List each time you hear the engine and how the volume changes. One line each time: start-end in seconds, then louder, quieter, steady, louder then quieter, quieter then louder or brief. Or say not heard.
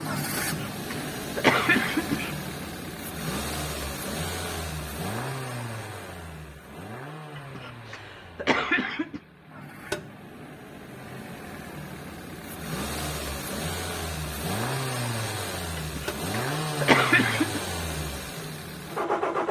0.0-19.4 quieter then louder.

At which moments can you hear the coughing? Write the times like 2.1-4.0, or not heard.
0.3-2.4, 7.3-9.2, 15.8-17.6.